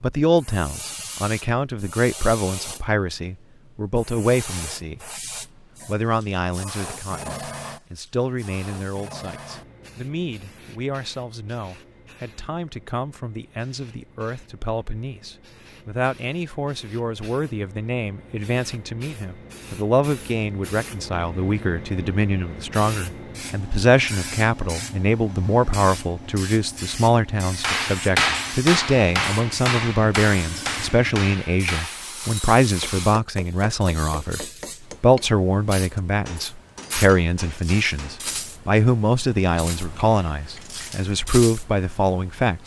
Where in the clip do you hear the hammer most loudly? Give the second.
28 s.